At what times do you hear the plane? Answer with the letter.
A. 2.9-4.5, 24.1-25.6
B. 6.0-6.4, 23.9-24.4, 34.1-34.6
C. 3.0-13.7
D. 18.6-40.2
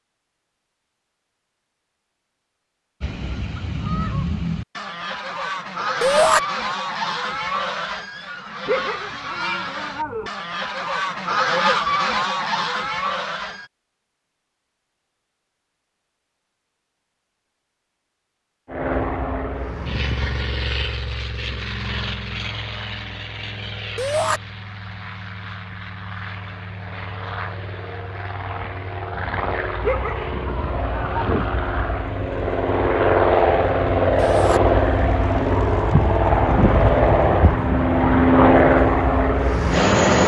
D.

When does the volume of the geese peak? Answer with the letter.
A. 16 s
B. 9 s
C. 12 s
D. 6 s
C.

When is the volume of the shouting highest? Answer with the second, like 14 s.
6 s.